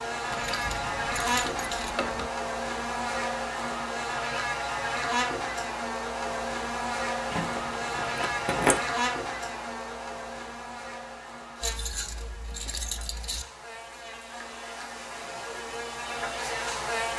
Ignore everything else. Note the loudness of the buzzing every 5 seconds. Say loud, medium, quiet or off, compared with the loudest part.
loud, loud, medium, loud.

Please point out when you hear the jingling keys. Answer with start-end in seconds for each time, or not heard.
0.3-2.3, 7.3-8.8, 11.6-13.4.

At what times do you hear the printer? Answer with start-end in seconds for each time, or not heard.
not heard.